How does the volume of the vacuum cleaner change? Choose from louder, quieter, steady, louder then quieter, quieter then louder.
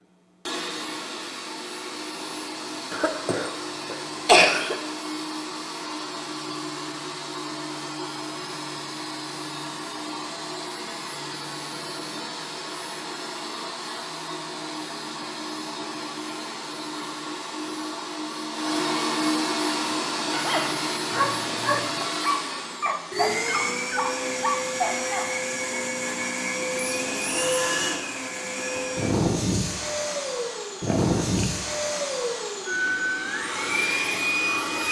louder.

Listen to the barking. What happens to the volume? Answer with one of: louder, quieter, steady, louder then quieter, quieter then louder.
steady.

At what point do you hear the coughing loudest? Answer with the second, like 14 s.
4 s.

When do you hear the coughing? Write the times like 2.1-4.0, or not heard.
2.9-4.8, 30.9-31.6.